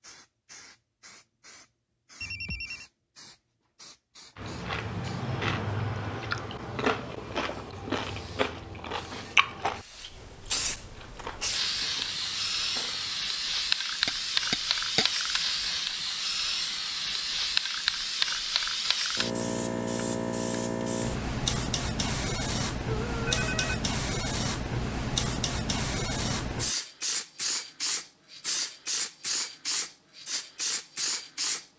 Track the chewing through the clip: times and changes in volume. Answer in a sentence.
You can hear the chewing from 4.3 to 13.2 s, getting quieter.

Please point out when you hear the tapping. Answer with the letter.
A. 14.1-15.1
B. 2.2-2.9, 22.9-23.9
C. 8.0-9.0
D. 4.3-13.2
A.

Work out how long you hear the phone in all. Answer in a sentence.
You can hear the phone for 2 seconds altogether.